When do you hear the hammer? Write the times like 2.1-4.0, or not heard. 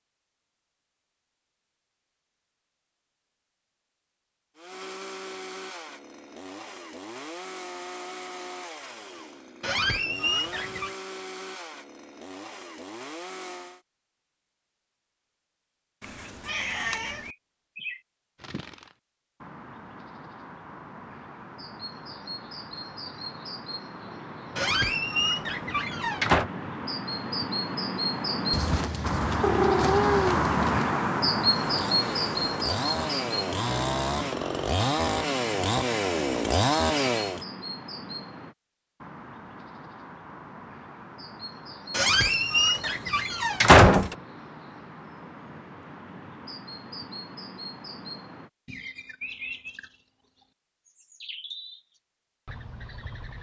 not heard.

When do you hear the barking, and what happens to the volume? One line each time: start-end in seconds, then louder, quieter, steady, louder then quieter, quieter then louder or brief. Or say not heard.
not heard.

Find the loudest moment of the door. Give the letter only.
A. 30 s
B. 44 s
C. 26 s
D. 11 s
B.